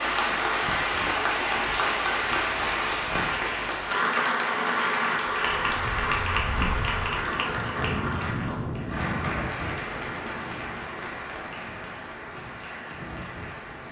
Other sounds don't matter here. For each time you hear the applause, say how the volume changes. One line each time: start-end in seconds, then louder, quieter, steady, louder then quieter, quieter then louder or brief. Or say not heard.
0.0-13.8 quieter.